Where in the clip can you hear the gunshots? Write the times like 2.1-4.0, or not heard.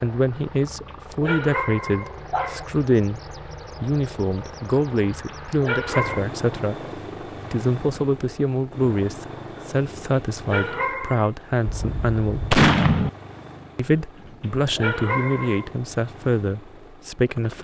11.7-13.1.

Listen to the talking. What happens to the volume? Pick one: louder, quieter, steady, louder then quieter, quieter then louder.
steady.